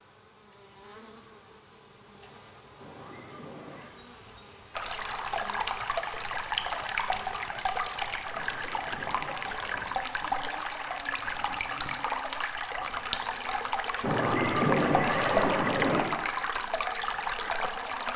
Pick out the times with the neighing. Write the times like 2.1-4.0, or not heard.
2.8-3.9, 8.3-10.1, 14.0-16.1.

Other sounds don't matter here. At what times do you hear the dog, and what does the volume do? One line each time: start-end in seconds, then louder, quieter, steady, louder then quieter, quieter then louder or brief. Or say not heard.
not heard.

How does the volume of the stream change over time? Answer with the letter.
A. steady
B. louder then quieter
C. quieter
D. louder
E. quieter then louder
A.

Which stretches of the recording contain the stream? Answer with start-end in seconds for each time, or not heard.
4.8-18.1.